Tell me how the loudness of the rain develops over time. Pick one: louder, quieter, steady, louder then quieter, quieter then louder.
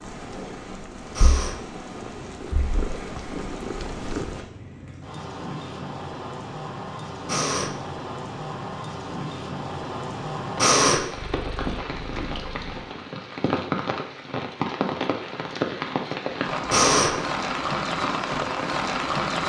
louder.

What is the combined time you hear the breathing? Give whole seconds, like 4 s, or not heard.
2 s.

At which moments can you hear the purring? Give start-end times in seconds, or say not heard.
0.1-4.5, 11.0-12.8.